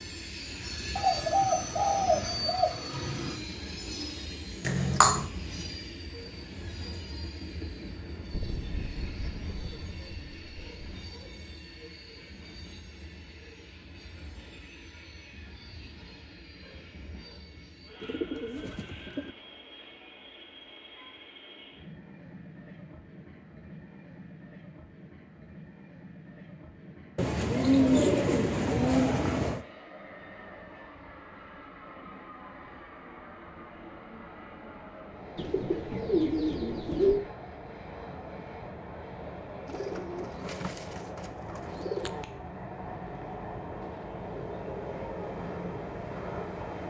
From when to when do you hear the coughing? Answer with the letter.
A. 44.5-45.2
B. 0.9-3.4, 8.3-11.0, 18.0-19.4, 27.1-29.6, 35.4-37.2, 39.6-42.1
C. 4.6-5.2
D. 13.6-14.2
C.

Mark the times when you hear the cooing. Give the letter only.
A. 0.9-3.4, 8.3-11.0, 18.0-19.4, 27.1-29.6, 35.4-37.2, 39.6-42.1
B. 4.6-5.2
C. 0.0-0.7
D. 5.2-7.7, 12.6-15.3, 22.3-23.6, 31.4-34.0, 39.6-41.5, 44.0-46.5
A.